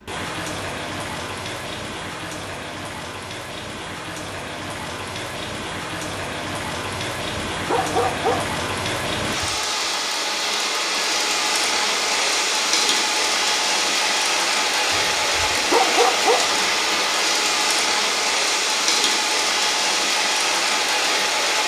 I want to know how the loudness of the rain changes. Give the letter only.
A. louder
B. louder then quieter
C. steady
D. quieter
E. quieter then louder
A.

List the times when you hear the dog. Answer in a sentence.
The dog can be heard from 6.9 to 8.4 s and from 14.9 to 16.4 s.